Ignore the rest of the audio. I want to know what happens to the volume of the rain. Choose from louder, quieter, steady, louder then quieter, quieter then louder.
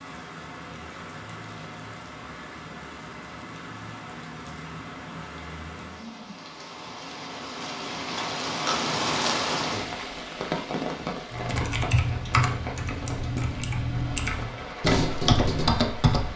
louder then quieter.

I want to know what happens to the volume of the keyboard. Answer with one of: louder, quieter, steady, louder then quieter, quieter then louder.
quieter then louder.